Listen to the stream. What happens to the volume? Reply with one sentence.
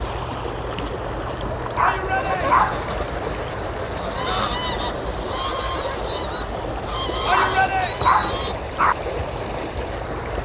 The loudness of the stream stays about the same.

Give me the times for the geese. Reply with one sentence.
You can hear the geese from 2.1 to 8.6 s.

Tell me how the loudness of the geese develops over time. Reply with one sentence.
The volume of the geese goes up.